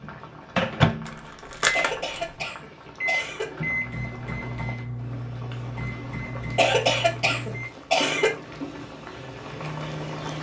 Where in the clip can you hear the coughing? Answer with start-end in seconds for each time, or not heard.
1.8-3.5, 6.3-8.3.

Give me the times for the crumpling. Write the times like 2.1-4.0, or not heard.
1.1-2.3.